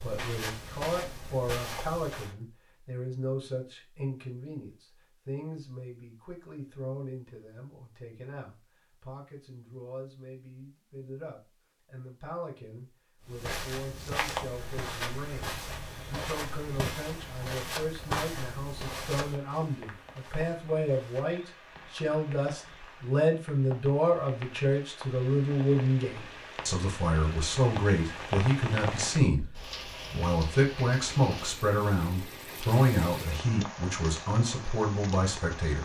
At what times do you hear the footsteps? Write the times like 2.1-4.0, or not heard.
0.0-2.4, 13.2-21.4.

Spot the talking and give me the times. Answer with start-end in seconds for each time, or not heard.
0.0-35.8.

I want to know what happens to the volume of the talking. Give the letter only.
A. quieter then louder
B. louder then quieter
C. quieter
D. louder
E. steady
A.